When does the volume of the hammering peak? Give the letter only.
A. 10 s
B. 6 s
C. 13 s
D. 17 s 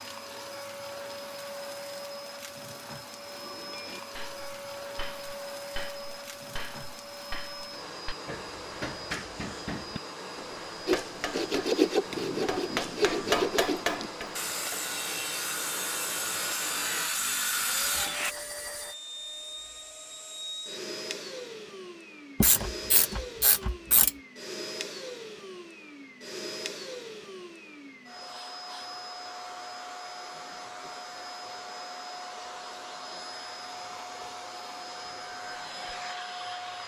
C.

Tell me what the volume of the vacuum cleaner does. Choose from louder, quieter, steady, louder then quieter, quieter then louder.
steady.